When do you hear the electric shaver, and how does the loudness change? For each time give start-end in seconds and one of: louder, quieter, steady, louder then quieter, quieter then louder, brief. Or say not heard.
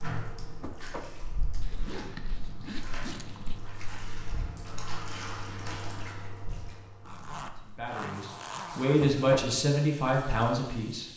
not heard.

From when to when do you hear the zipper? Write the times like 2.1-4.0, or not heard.
1.6-3.6, 7.0-9.0.